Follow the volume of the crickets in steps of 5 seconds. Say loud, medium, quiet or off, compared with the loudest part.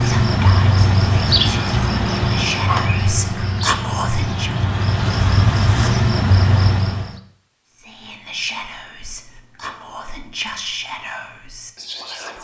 loud, loud, off.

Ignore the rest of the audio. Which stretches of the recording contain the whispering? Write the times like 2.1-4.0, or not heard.
0.0-4.7, 7.7-12.3.